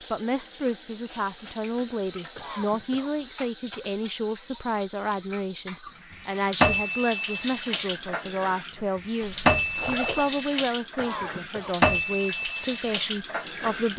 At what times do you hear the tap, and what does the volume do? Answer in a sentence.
The tap can be heard from 0.0 to 13.9 s, getting louder.